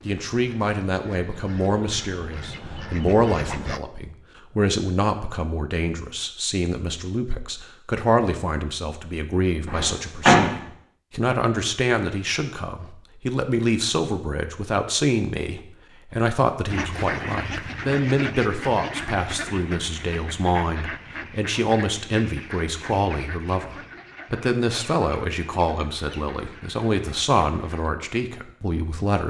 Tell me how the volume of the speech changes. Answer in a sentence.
The volume of the speech stays about the same.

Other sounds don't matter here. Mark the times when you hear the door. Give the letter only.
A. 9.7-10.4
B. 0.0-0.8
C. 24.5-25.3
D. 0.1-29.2
A.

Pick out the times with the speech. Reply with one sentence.
The speech can be heard from 0.1 to 29.2 s.